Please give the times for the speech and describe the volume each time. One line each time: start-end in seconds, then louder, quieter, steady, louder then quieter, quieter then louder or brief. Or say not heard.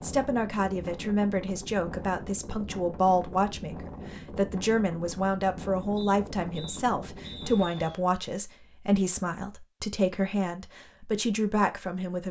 0.0-12.2 steady.